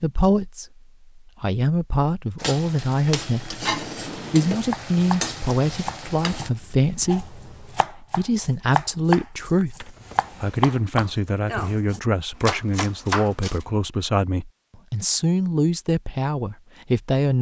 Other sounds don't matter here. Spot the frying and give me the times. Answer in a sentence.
The frying can be heard from 2.4 to 6.5 s.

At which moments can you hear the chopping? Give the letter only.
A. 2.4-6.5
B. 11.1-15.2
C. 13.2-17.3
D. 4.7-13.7
D.